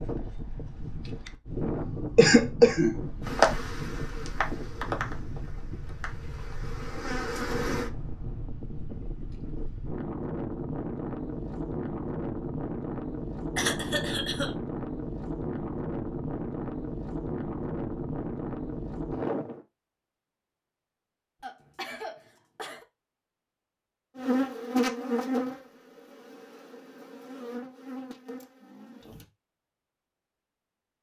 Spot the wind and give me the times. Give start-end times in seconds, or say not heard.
0.0-19.6.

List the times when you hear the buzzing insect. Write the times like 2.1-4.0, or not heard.
3.2-7.9, 24.1-29.2.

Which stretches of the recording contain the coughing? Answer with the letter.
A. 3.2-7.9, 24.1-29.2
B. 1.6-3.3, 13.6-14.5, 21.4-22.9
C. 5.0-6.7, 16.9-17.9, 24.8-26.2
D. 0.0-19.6
B.